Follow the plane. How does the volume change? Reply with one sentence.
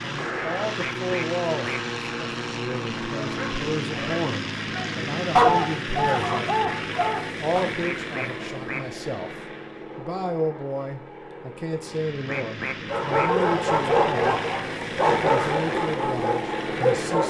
The loudness of the plane goes down, then up.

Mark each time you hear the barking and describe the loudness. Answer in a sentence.
You can hear the barking from 3.2 to 7.7 s, getting louder then quieter; and from 12.9 to 17.2 s, getting quieter.